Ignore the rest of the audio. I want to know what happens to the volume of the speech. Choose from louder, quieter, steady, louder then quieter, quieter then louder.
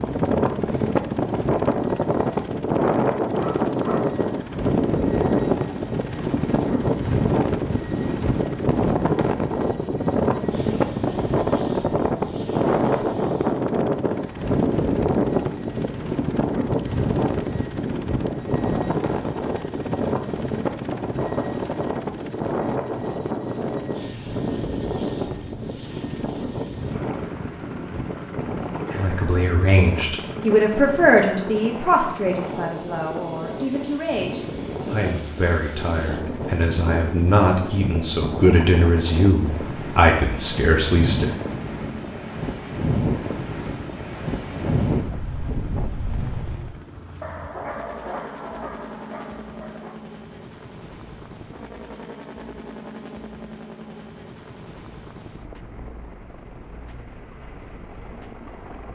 quieter then louder.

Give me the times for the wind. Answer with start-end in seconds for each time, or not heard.
0.0-46.8.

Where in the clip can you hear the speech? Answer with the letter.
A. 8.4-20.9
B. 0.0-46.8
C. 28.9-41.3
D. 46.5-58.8
C.